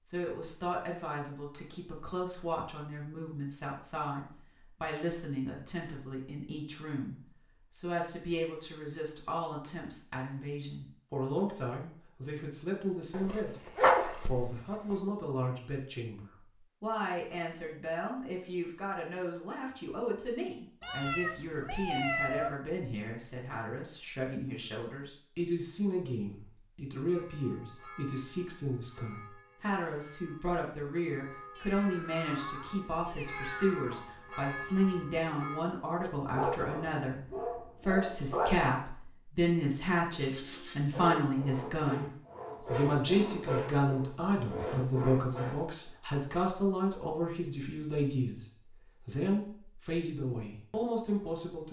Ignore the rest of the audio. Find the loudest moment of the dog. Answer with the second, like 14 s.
14 s.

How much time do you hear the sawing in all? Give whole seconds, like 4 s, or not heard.
6 s.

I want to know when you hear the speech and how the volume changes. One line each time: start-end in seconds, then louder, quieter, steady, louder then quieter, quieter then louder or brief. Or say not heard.
0.1-51.6 louder.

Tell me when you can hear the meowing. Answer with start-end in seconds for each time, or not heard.
20.8-22.6, 31.6-34.1.